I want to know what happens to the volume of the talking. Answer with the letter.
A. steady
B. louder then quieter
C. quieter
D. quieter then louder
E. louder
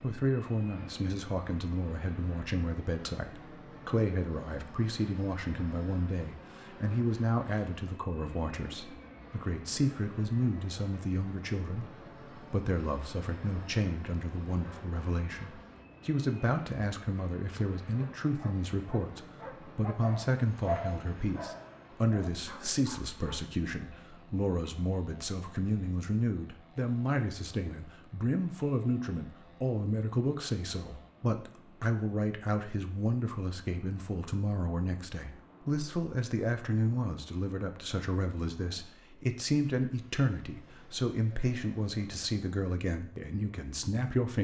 A.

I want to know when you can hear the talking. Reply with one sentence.
The talking can be heard from 0.0 to 44.3 s.